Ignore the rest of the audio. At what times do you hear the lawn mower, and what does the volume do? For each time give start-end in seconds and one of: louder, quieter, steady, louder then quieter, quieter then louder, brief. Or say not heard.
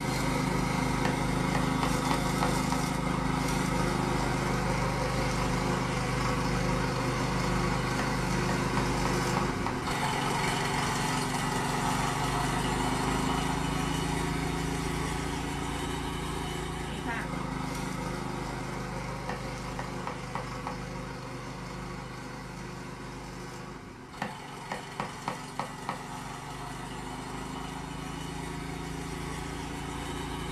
0.0-30.4 quieter.